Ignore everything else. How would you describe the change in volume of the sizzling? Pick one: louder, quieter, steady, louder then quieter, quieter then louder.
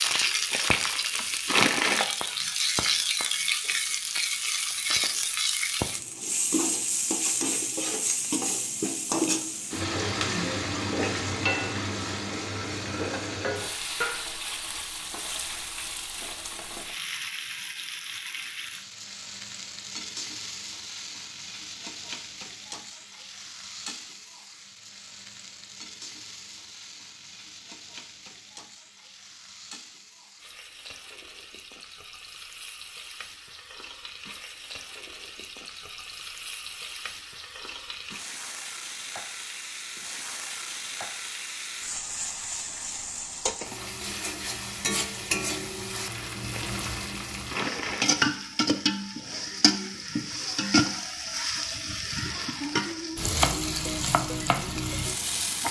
quieter then louder.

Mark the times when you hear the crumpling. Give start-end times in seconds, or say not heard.
0.1-2.0, 46.0-48.1.